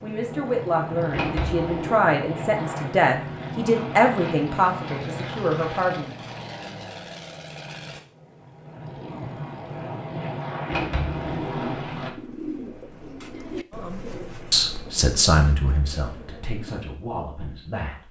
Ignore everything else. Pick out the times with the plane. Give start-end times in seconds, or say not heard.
0.0-12.1.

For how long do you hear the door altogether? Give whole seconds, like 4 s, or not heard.
2 s.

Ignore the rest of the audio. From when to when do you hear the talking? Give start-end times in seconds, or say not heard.
0.0-6.2, 13.8-18.0.